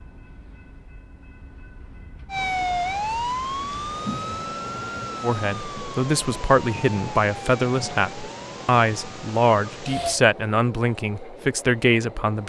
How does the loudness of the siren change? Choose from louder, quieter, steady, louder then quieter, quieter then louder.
quieter.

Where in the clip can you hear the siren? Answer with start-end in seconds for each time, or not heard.
2.2-10.2.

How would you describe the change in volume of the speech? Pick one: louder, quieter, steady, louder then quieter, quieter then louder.
steady.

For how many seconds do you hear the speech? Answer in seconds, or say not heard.
7 s.